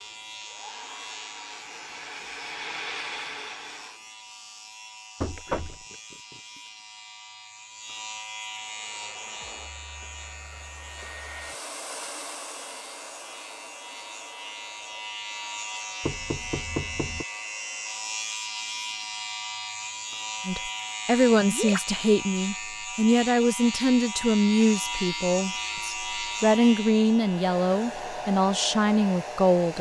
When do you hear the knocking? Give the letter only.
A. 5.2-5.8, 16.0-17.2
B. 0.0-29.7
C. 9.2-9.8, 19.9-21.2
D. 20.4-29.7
A.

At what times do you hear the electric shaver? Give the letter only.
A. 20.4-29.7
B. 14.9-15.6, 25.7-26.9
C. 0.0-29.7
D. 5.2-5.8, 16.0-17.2
C.